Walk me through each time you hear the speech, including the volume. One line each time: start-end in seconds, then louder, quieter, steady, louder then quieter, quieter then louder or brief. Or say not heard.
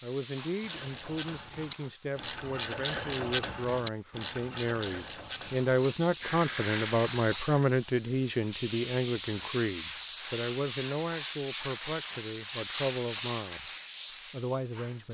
0.0-13.7 louder then quieter
14.3-15.0 brief.